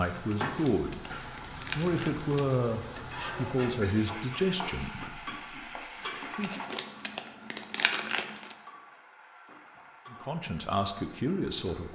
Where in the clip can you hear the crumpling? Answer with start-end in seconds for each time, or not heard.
0.5-2.5, 6.4-8.6.